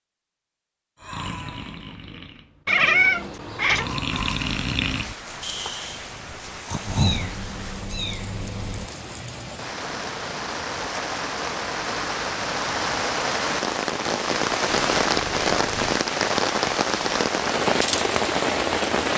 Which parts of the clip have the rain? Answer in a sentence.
The rain can be heard from 4.1 to 19.1 s.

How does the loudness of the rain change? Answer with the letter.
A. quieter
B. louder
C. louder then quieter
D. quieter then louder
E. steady
B.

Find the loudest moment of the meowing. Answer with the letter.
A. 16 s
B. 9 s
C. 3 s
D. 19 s
C.